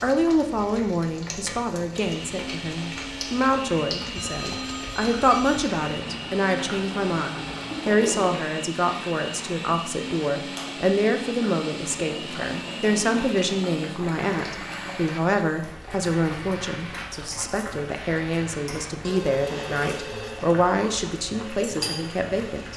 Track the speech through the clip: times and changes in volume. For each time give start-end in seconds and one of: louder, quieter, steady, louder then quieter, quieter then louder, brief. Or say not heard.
0.0-22.7 steady.